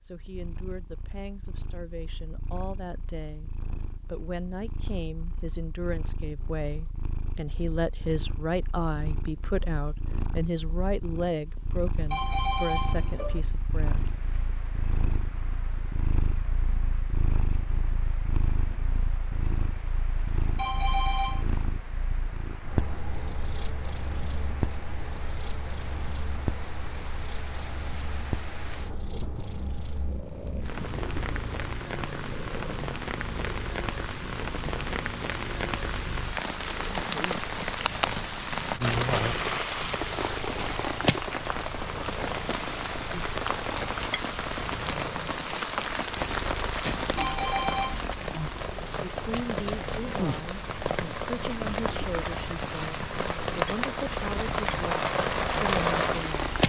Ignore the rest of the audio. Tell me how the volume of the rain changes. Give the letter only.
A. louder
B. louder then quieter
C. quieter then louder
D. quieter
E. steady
A.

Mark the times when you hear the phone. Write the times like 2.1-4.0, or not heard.
12.1-13.4, 20.6-21.4, 47.1-48.0.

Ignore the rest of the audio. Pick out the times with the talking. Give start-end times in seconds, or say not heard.
0.0-14.1, 49.0-56.5.